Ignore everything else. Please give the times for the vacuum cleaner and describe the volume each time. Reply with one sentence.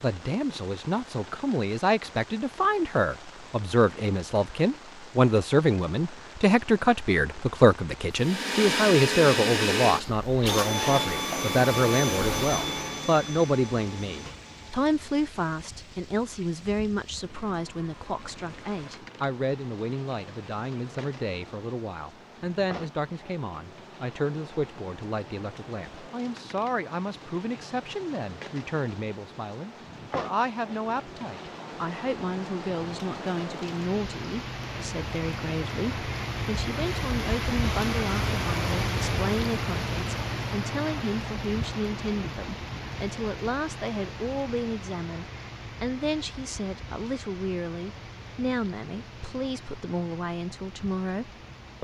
The vacuum cleaner can be heard from 8.1 to 14.7 s, getting quieter.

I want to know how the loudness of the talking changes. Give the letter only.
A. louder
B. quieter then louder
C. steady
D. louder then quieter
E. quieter
E.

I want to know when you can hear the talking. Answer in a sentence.
You can hear the talking from 0.0 to 51.7 s.